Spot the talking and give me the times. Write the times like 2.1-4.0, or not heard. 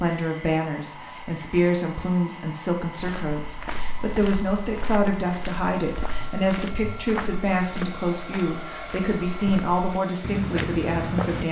0.0-11.4.